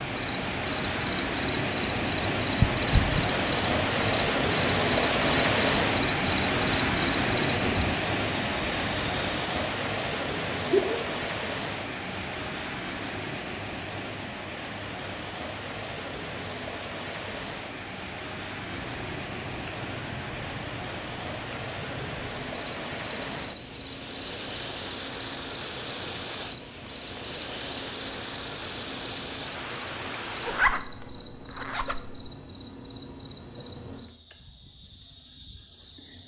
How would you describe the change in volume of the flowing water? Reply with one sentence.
The volume of the flowing water goes down.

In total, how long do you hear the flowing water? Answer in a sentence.
The flowing water can be heard for 31 seconds in total.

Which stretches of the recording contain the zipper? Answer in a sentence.
The zipper can be heard from 2.6 to 3.2 s and from 30.4 to 32.3 s.